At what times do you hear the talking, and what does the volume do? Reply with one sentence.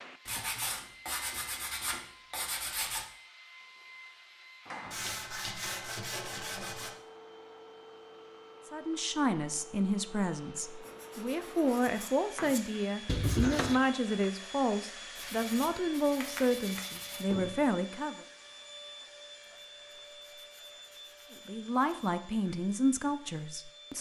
The talking can be heard from 8.7 to 18.2 s, at a steady volume; and briefly from 21.4 to 23.9 s.